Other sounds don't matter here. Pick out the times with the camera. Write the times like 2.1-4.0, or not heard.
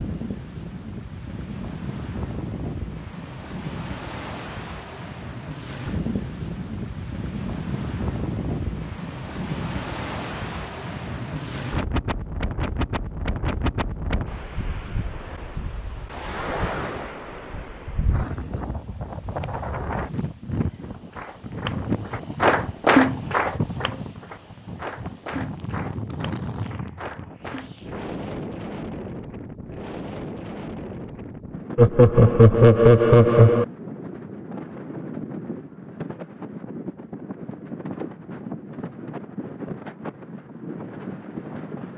not heard.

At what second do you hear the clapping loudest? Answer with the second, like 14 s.
23 s.